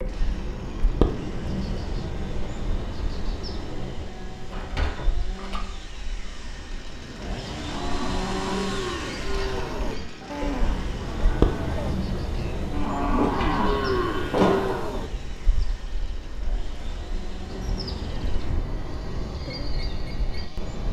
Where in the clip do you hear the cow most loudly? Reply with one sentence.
The loudest moment of the cow is at 14 seconds.